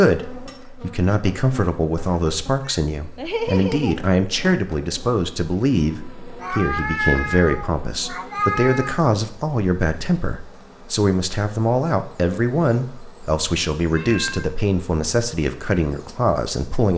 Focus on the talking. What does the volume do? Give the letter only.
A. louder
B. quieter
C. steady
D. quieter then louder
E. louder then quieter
C.